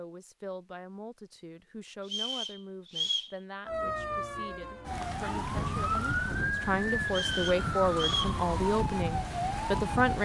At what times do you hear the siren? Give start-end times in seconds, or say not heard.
3.6-10.2.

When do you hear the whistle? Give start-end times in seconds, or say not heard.
2.0-3.4, 7.0-8.3.